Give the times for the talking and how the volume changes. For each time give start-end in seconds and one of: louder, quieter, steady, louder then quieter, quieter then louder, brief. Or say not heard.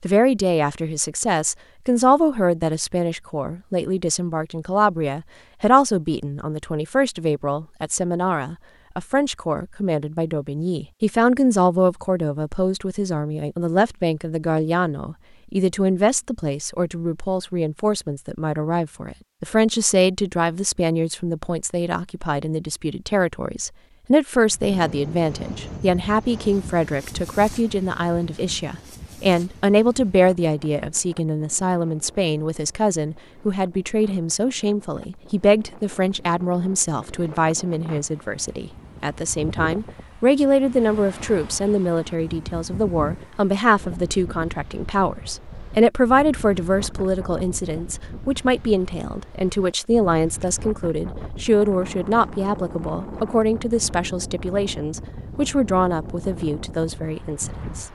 0.0-57.8 steady.